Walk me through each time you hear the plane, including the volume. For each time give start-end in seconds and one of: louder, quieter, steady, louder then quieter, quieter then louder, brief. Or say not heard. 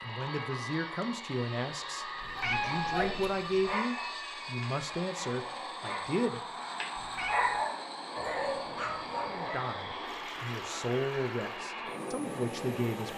0.0-13.1 steady.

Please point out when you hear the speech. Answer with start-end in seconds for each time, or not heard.
0.0-6.4, 9.2-13.1.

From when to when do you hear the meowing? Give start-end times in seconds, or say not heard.
2.2-3.8, 7.0-7.7.